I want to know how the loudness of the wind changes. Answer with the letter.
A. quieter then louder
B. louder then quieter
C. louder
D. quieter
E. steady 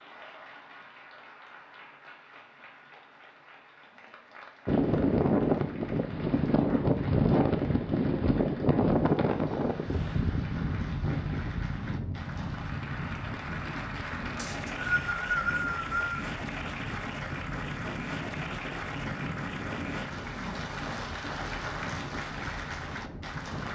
D.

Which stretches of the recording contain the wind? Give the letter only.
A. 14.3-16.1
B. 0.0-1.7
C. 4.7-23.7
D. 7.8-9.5
C.